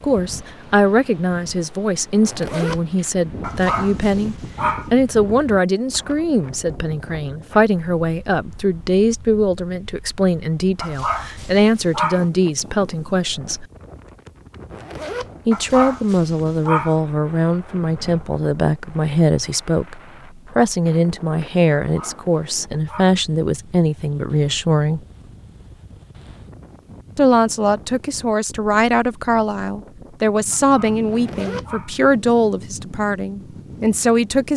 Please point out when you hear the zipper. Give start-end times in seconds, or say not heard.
2.2-2.8, 14.7-15.3, 31.1-31.6.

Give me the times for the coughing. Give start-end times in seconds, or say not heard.
not heard.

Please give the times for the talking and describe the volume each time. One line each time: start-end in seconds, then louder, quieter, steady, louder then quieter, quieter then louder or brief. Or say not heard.
0.0-13.7 steady
15.4-25.0 steady
27.1-34.5 steady.